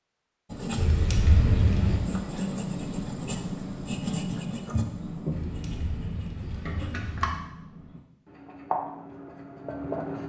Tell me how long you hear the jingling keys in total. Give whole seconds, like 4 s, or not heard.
3 s.